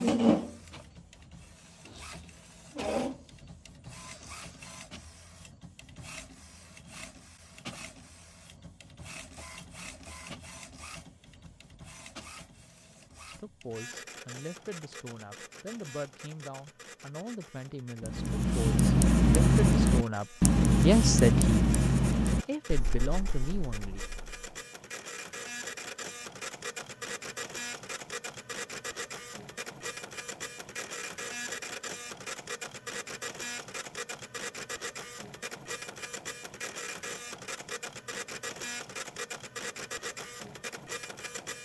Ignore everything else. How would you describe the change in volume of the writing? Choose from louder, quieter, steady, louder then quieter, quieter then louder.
quieter.